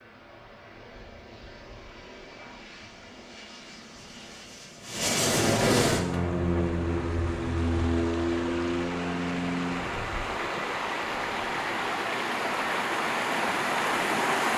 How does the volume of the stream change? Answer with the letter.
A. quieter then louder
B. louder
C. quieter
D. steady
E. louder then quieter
B.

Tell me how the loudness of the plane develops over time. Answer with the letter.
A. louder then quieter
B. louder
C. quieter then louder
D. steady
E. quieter
A.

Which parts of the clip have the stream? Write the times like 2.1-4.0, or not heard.
6.1-14.5.